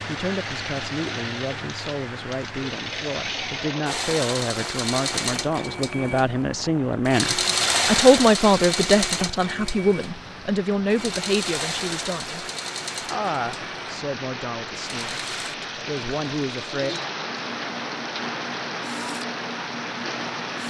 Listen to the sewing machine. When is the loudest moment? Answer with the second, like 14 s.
8 s.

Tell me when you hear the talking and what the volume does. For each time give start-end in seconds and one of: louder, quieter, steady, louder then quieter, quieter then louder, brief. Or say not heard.
0.0-16.9 louder then quieter.